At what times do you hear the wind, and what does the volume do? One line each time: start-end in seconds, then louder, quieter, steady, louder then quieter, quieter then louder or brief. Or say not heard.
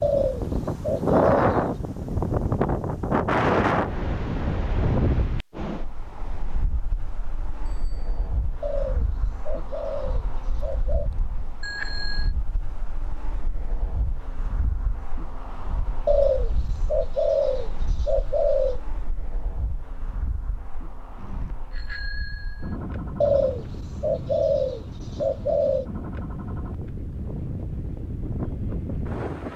0.0-29.5 quieter then louder.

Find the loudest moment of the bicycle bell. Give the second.
12 s.